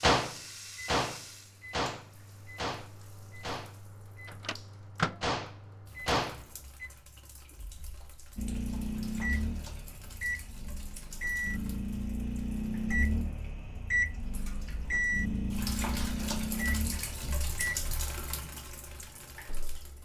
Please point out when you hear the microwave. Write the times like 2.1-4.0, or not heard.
0.0-6.9, 8.3-17.9.